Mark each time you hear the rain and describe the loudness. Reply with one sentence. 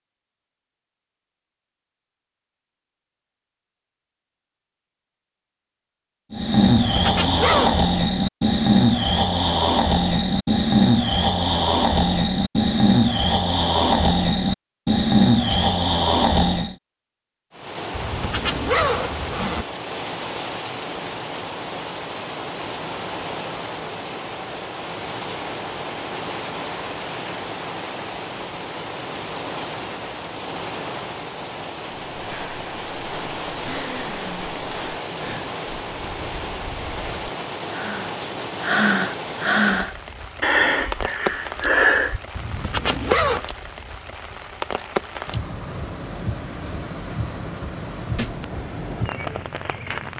You can hear the rain from 17.5 to 50.1 s, at a steady volume.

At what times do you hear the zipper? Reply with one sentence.
The zipper can be heard from 6.8 to 7.8 s, from 17.9 to 19.6 s and from 42.4 to 43.5 s.